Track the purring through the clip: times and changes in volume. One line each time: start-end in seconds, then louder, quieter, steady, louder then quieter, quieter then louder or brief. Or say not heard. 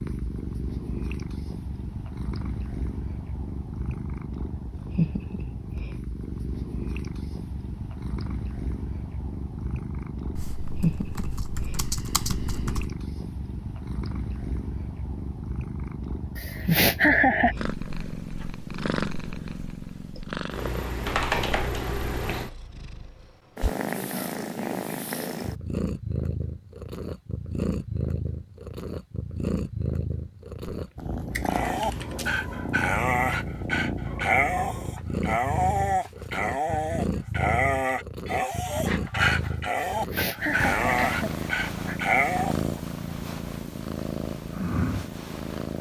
0.0-45.7 steady.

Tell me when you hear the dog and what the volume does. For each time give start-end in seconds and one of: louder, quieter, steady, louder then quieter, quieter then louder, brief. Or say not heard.
31.4-42.8 steady.